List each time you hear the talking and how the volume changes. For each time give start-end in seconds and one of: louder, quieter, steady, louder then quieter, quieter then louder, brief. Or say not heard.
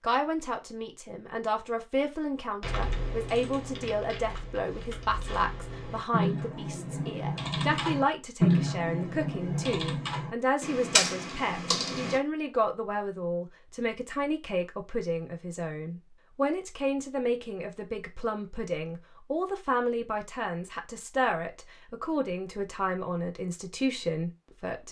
0.0-24.8 steady.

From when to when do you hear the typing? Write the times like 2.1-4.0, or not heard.
2.6-12.2.